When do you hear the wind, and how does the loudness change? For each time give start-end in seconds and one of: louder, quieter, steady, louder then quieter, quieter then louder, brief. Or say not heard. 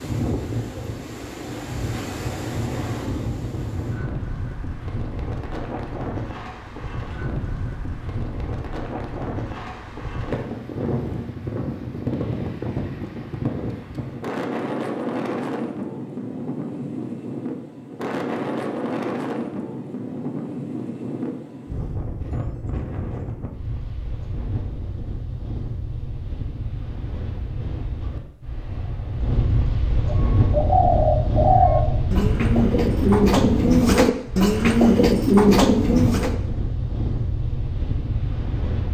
0.0-38.8 steady.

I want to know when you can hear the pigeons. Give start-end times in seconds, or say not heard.
30.1-36.4.